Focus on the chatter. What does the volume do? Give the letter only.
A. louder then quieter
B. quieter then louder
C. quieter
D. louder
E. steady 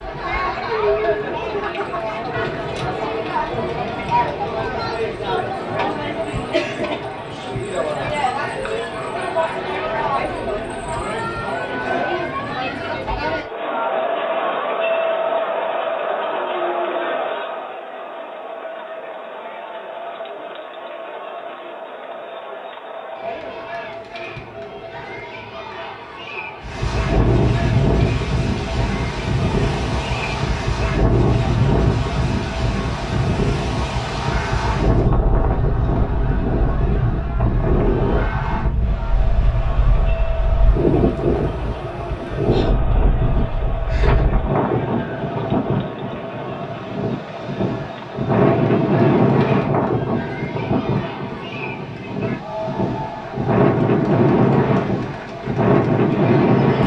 C.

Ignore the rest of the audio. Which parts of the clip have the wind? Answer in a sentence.
The wind can be heard from 26.6 to 56.8 s.